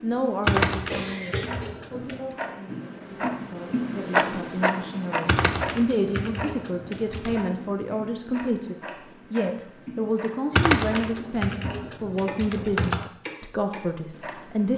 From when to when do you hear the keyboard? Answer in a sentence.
The keyboard can be heard from 0.5 to 2.2 s, from 5.2 to 7.5 s and from 10.5 to 13.1 s.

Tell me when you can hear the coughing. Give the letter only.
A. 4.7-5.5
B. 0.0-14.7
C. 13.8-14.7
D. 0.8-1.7
D.